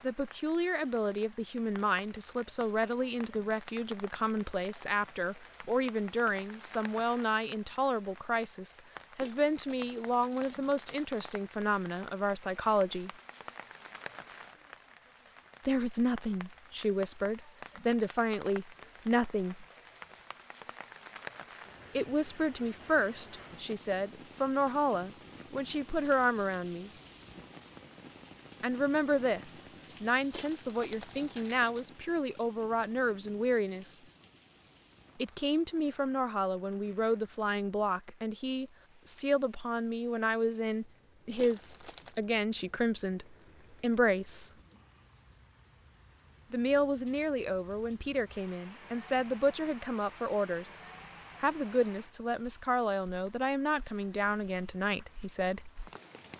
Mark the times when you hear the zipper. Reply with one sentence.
You can't hear the zipper here.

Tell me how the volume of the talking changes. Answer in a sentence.
The volume of the talking stays about the same.